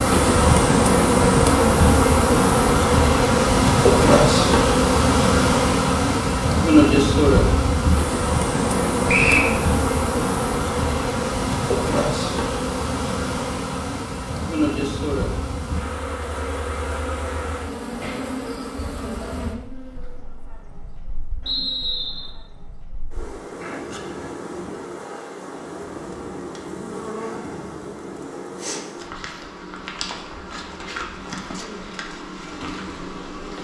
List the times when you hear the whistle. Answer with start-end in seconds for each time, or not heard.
9.1-9.5, 21.4-22.3.